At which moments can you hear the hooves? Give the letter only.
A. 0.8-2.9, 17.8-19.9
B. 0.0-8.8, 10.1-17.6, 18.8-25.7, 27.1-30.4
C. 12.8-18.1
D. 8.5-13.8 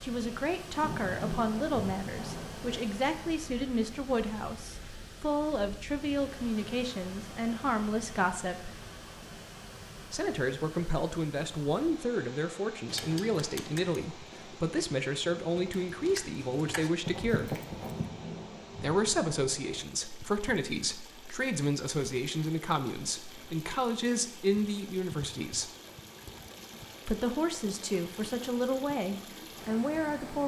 C.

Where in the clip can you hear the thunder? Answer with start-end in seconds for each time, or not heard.
0.8-2.9, 17.8-19.9.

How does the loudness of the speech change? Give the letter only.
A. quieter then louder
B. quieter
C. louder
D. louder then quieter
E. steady
E.